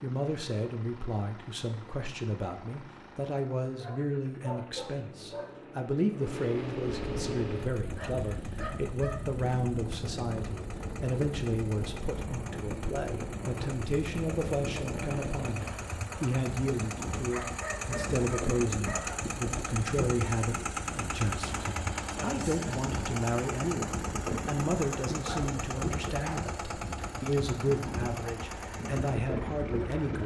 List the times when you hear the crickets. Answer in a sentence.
The crickets can't be heard in this clip.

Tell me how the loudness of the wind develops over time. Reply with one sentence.
The loudness of the wind stays about the same.